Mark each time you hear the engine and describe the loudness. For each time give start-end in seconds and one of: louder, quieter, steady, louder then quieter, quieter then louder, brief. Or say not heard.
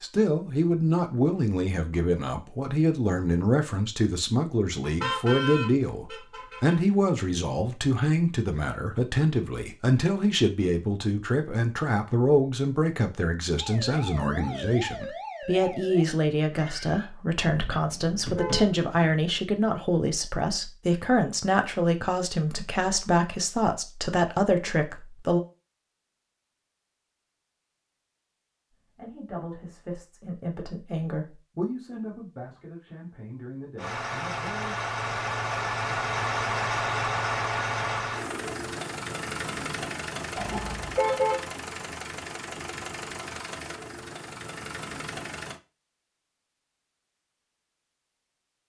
33.8-45.6 quieter.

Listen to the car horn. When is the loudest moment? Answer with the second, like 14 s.
41 s.